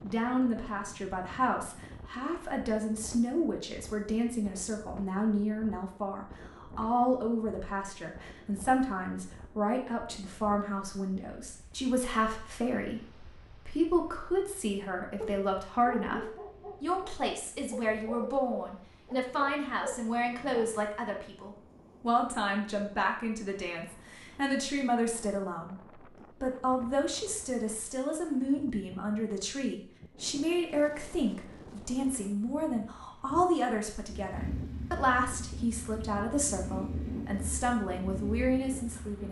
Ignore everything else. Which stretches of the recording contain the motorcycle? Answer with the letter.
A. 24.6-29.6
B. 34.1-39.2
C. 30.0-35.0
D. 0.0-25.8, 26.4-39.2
B.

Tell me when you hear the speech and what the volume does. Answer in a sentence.
The speech can be heard from 0.0 to 25.8 s, at a steady volume; and from 26.4 to 39.2 s, at a steady volume.